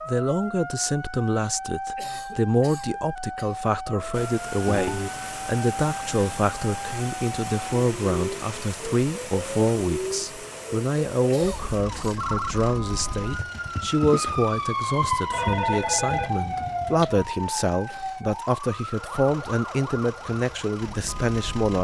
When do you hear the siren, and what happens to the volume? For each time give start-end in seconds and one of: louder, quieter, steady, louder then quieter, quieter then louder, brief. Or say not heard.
0.0-21.8 louder then quieter.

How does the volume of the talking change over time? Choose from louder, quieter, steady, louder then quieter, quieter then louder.
steady.